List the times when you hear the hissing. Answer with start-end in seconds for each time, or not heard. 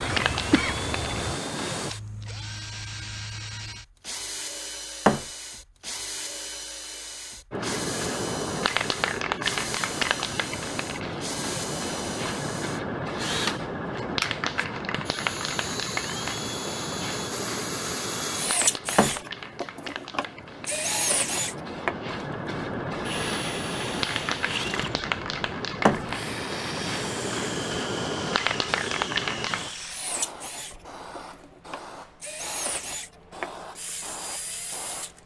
0.0-1.9, 7.5-35.1.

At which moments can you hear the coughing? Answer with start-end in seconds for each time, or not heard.
0.0-1.4.